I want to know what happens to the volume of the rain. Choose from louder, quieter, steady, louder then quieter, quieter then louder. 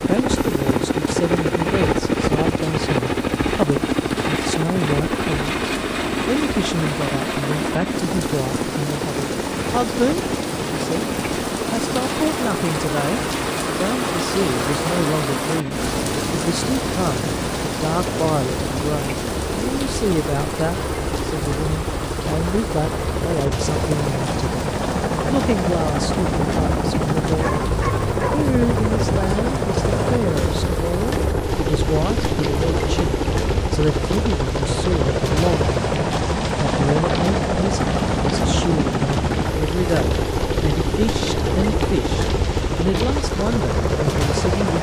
louder then quieter.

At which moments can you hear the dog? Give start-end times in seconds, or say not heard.
27.4-28.5.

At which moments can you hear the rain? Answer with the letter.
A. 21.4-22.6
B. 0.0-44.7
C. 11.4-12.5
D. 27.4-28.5
B.